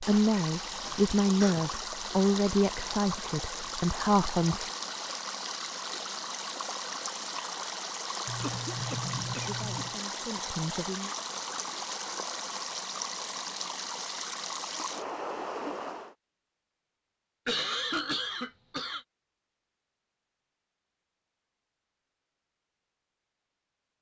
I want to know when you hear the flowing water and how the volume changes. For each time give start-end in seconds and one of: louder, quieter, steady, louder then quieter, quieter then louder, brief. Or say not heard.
0.0-16.1 steady.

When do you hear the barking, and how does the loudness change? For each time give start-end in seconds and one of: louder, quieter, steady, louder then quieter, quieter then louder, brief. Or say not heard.
not heard.